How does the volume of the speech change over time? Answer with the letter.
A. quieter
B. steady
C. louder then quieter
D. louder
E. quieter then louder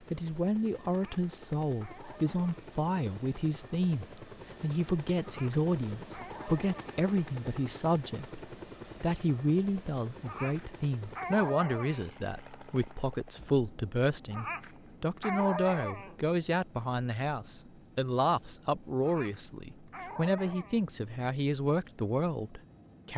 B.